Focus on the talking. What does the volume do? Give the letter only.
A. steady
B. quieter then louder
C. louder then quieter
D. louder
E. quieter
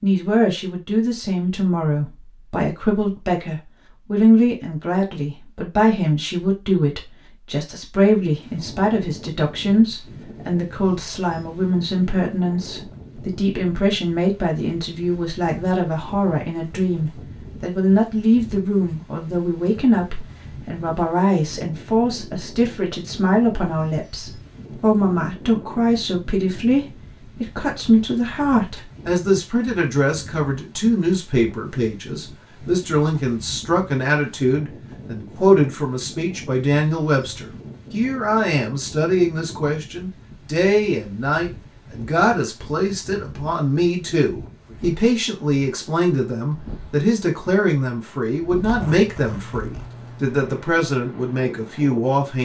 A.